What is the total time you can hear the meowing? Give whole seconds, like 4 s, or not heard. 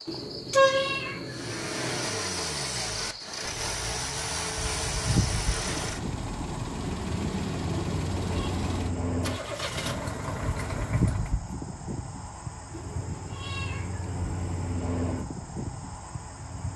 5 s.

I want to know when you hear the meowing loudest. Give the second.
1 s.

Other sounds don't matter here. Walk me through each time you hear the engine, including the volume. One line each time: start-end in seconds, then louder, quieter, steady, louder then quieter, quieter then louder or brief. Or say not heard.
1.2-11.4 steady.